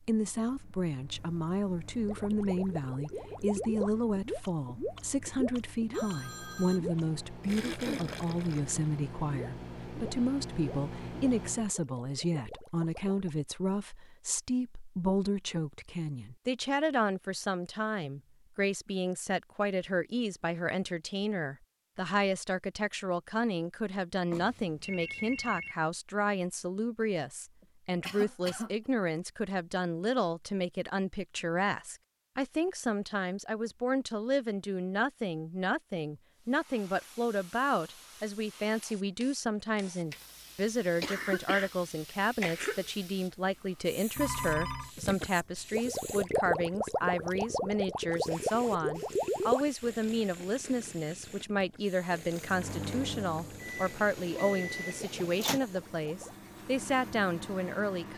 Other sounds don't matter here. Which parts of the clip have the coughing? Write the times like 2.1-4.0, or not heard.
7.6-8.2, 27.6-28.7, 41.0-41.7, 42.4-42.9.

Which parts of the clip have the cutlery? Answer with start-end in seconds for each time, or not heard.
not heard.